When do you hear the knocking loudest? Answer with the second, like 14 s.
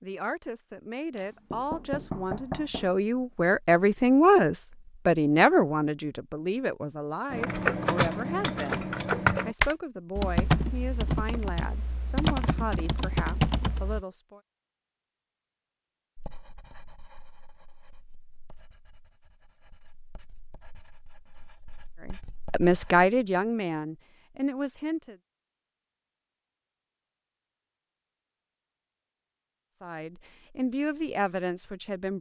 2 s.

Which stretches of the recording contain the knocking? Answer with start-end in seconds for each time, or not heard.
1.1-3.0.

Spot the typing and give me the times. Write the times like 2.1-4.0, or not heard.
7.3-14.1.